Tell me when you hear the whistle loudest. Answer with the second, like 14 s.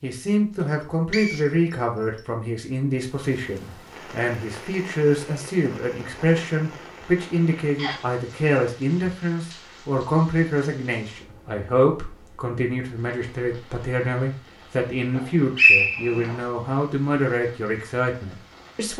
16 s.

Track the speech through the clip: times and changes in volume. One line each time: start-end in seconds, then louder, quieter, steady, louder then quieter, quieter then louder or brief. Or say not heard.
0.0-18.9 steady.